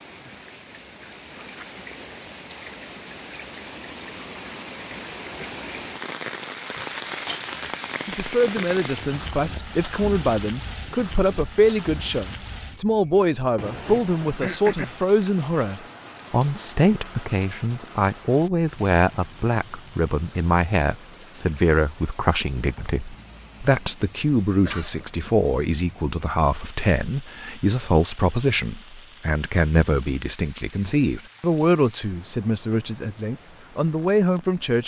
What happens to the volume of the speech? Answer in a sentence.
The loudness of the speech stays about the same.